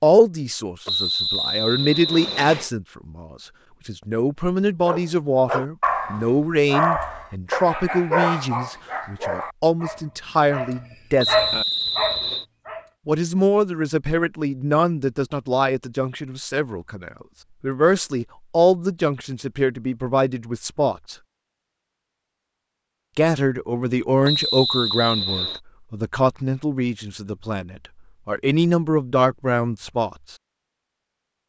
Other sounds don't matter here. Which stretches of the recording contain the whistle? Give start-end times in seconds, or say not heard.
0.8-2.7, 11.2-12.4, 24.2-25.6.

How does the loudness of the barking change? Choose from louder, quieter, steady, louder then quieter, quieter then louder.
quieter then louder.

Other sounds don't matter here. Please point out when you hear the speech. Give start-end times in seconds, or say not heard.
0.0-11.3, 13.1-21.1, 23.1-30.4.